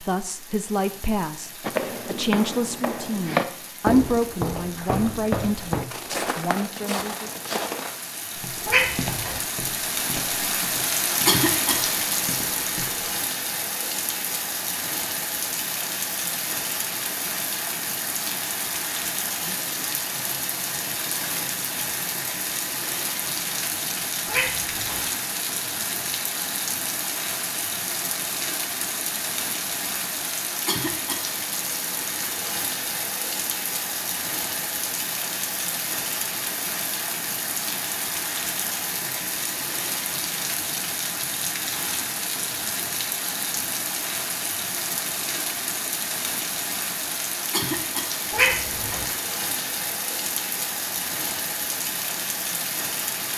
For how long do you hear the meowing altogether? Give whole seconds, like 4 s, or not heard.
2 s.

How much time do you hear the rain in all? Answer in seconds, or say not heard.
53 s.